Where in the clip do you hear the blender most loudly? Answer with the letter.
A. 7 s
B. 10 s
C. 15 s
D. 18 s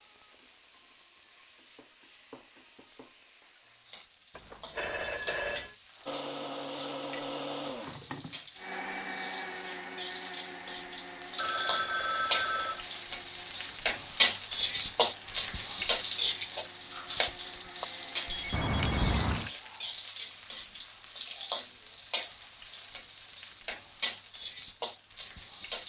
A.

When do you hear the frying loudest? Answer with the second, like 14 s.
15 s.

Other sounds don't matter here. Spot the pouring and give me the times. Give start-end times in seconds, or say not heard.
18.5-19.5.